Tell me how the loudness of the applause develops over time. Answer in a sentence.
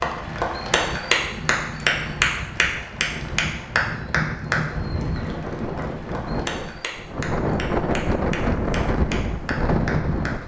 The loudness of the applause goes down.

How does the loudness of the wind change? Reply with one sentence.
The volume of the wind goes up.